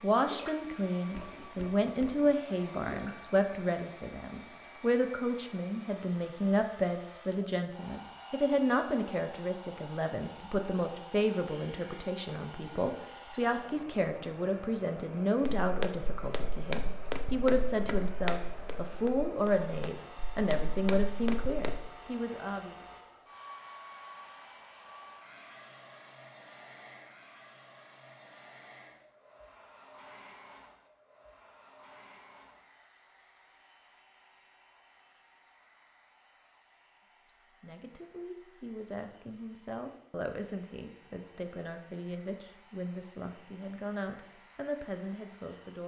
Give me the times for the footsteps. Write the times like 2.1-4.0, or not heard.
15.4-21.8.